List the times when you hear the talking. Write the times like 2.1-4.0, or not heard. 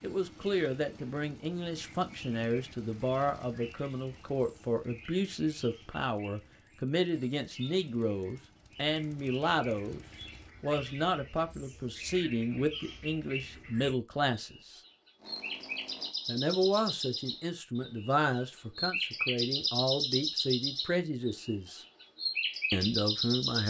0.0-14.8, 16.2-21.8, 22.7-23.6.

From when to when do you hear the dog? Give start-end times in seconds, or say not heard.
not heard.